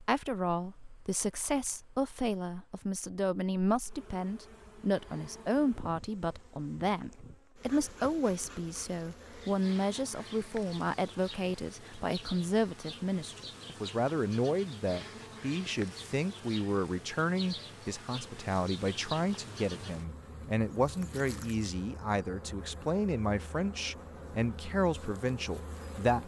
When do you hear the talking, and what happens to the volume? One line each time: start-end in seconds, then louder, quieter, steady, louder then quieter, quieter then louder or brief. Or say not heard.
0.0-26.2 steady.